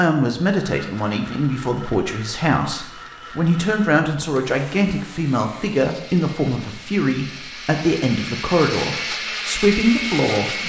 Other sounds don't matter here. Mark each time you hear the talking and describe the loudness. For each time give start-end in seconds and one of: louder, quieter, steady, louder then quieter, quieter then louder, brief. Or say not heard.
0.0-10.6 steady.